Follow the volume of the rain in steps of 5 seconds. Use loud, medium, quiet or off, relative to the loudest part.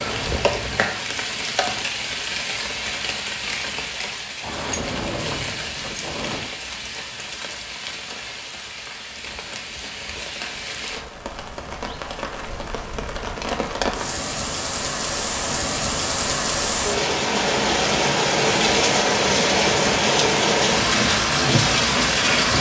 medium, quiet, medium, loud, loud.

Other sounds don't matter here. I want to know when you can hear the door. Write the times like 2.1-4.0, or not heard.
4.4-6.5.